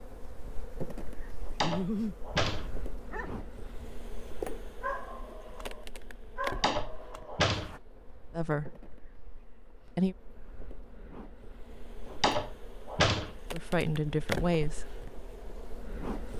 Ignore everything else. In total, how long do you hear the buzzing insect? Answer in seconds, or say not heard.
16 s.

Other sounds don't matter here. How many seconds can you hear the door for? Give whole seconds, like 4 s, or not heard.
4 s.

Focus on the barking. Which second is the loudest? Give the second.
2 s.